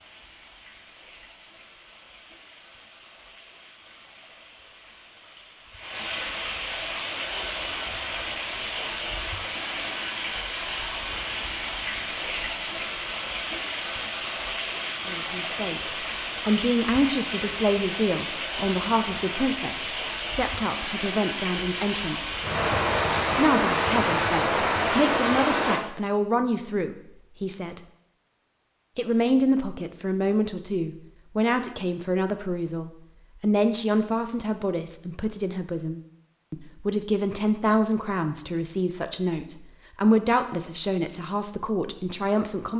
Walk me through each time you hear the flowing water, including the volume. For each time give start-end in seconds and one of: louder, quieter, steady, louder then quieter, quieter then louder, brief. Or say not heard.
0.0-25.8 louder.